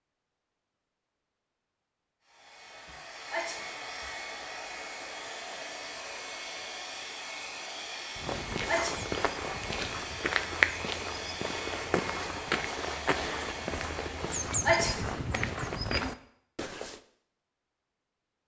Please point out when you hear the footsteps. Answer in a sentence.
You can hear the footsteps from 8.2 to 17.0 s.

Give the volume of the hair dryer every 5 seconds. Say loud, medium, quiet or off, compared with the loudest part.
loud, loud, loud, off.